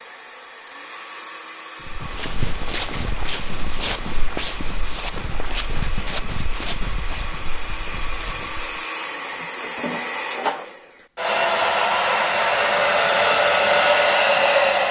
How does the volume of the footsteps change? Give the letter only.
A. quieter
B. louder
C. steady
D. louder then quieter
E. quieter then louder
A.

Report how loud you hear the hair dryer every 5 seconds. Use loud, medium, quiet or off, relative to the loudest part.
quiet, quiet, loud.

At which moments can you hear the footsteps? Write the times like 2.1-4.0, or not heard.
1.9-8.8.